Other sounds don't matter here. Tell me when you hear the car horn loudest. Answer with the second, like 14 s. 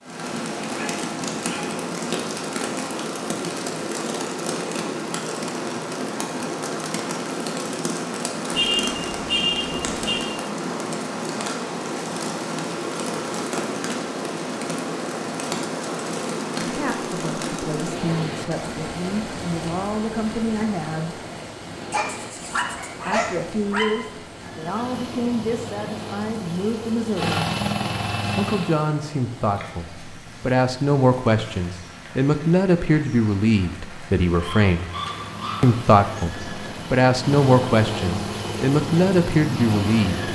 9 s.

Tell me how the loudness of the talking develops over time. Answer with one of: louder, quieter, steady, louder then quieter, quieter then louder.
louder.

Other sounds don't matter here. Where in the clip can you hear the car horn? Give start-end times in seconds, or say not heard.
8.5-10.3.